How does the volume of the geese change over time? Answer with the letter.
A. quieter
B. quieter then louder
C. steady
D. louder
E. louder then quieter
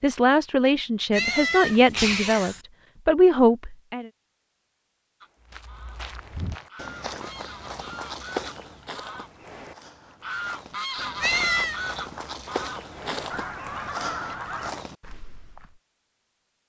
D.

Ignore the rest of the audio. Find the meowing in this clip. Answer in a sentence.
The meowing can be heard from 1.1 to 2.6 s and from 11.2 to 11.8 s.